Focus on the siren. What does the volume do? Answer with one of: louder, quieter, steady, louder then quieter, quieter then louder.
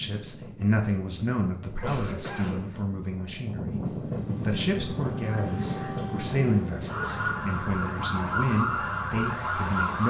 louder.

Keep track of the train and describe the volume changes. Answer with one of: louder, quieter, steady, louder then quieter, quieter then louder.
louder then quieter.